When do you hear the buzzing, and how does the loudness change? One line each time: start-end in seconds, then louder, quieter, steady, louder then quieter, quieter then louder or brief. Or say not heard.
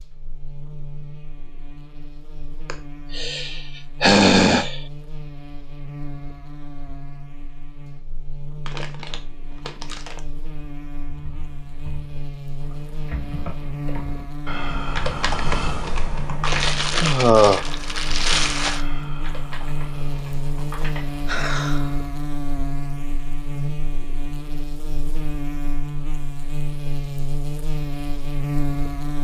0.0-29.1 louder.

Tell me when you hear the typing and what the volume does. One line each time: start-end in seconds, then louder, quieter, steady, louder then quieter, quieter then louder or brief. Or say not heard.
11.0-21.4 louder then quieter.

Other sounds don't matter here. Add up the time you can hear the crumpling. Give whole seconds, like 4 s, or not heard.
4 s.